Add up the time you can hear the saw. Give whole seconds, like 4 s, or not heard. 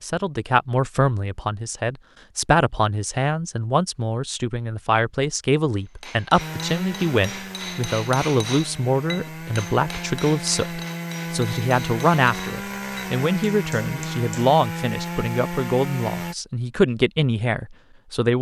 10 s.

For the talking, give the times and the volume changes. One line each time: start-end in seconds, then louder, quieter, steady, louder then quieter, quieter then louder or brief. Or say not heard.
0.0-18.3 steady.